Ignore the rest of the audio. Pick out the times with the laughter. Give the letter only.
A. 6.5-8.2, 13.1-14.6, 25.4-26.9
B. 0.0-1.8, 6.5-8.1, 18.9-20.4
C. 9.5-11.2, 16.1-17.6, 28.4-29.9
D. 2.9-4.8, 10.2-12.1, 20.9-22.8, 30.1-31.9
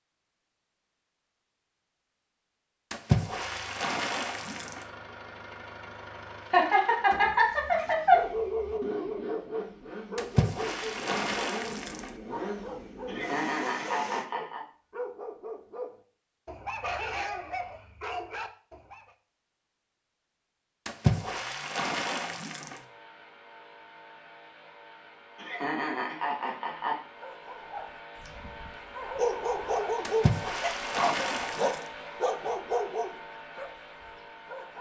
A.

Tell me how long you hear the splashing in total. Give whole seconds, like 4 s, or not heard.
8 s.